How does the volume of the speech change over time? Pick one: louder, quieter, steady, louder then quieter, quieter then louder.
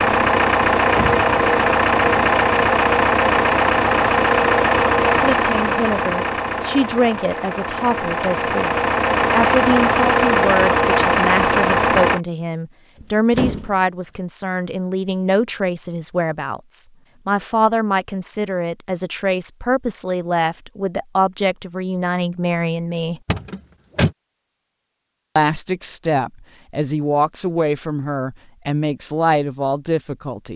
steady.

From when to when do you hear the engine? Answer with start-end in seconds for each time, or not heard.
0.0-12.2.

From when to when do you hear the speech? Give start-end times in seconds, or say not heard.
5.2-23.2, 25.4-30.5.